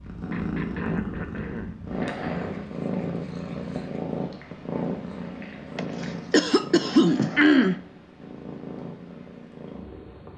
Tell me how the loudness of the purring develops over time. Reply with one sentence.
The loudness of the purring goes down.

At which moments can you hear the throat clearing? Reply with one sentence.
You can hear the throat clearing from 0.3 to 2.6 s and from 5.8 to 7.8 s.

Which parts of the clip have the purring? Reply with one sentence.
You can hear the purring from 0.0 to 10.3 s.